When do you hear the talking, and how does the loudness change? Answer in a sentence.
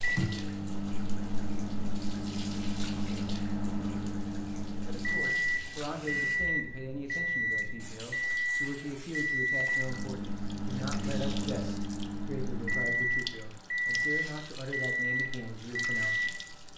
You can hear the talking from 4.8 to 16.4 s, at a steady volume.